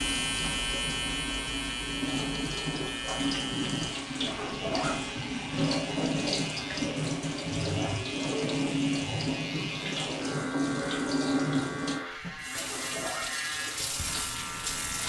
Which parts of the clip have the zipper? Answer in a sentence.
The zipper can be heard from 4.2 to 5.0 s and from 12.5 to 13.3 s.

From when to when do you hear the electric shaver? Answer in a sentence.
You can hear the electric shaver from 0.0 to 15.0 s.